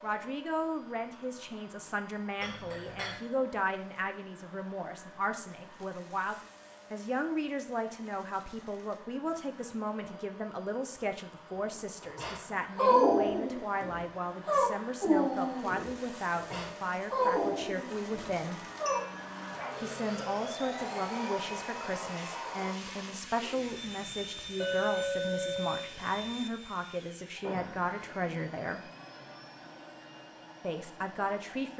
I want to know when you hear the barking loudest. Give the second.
13 s.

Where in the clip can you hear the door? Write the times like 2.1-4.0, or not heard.
27.4-27.9.